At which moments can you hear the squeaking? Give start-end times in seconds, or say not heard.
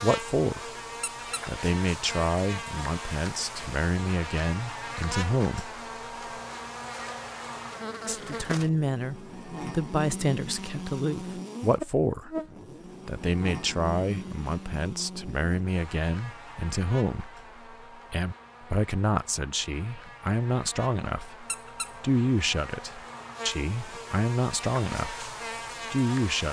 1.0-1.4, 21.4-21.9.